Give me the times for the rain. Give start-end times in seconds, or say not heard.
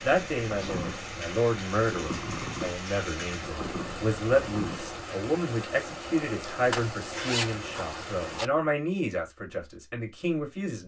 0.0-8.4.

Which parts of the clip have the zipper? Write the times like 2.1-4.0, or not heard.
6.7-8.4.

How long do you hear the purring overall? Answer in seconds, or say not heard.
5 s.